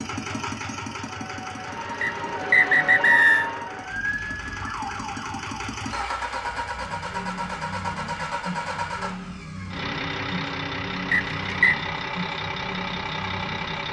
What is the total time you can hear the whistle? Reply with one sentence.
The whistle can be heard for 2 seconds in total.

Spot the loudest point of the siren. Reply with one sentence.
The volume of the siren peaks at 3 seconds.